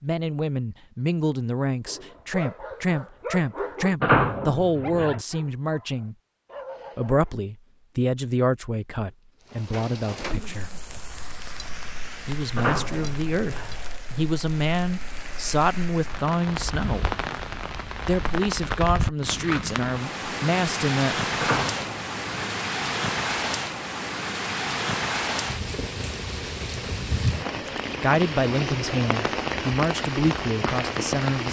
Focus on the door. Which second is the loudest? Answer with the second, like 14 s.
4 s.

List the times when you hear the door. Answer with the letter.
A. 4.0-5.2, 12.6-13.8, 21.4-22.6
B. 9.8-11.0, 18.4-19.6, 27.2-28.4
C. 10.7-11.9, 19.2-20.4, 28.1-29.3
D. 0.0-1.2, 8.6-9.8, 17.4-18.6
A.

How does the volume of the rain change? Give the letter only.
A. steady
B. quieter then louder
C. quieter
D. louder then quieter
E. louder
E.